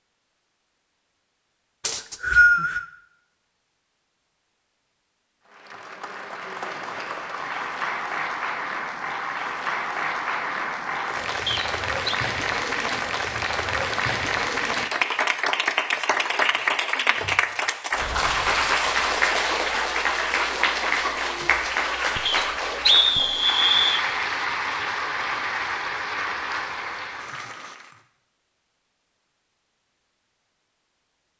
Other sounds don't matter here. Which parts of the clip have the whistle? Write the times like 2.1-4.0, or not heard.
1.8-2.9, 11.4-12.2, 22.2-24.1.